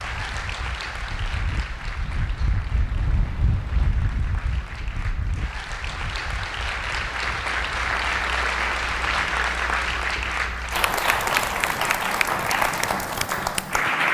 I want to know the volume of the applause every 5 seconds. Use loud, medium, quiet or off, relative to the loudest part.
quiet, loud, loud.